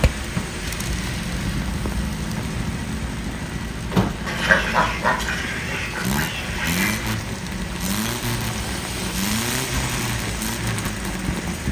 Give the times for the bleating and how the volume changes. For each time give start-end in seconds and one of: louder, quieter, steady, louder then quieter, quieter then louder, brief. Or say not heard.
not heard.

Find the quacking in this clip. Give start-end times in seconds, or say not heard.
4.2-7.2.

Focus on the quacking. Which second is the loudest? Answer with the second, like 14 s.
5 s.